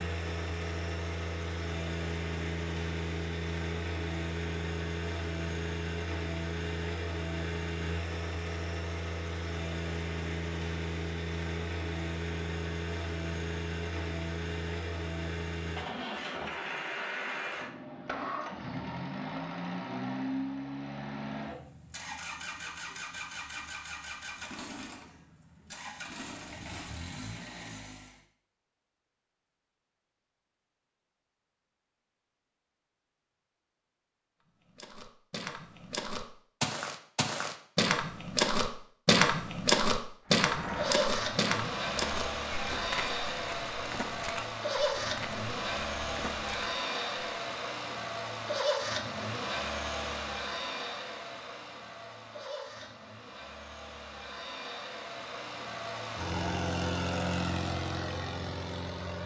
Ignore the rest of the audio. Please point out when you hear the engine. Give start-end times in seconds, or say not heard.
0.0-28.2, 40.2-59.2.